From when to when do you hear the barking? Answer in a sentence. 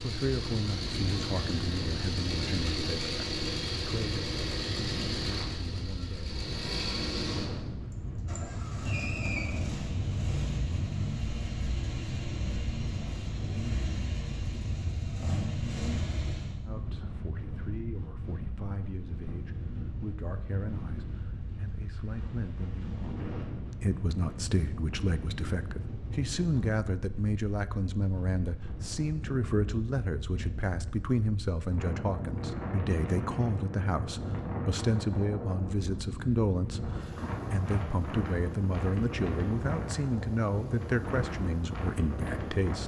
You can't hear the barking here.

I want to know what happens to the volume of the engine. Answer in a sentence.
The loudness of the engine stays about the same.